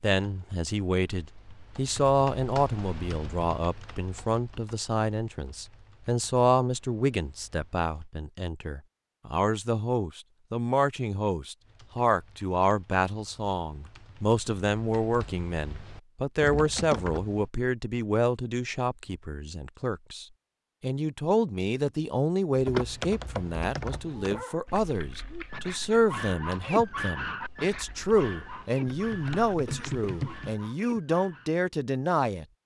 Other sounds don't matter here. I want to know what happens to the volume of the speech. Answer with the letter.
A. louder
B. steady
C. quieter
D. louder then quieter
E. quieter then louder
B.